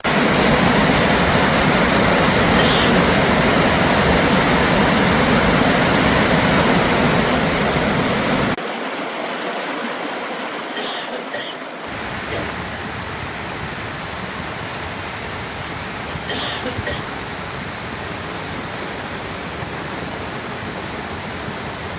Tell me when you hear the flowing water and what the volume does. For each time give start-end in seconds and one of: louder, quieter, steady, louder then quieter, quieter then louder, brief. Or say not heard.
0.0-21.9 quieter.